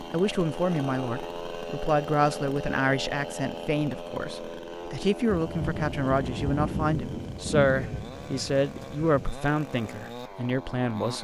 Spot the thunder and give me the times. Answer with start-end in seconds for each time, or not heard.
5.2-9.3.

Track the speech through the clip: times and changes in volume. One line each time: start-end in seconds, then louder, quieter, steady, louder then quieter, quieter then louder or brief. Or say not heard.
0.0-11.2 steady.